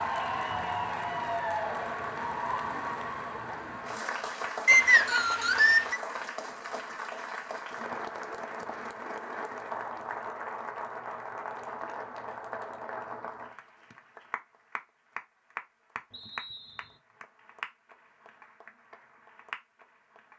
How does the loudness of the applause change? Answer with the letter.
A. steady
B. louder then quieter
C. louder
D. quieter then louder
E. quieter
E.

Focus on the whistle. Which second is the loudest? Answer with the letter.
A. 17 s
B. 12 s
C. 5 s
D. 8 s
C.